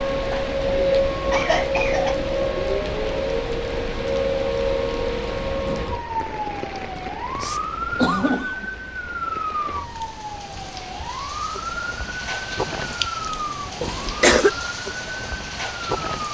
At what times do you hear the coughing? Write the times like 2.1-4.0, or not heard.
0.2-2.1, 6.8-8.7, 13.8-14.5.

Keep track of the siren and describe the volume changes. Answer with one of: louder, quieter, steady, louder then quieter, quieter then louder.
quieter.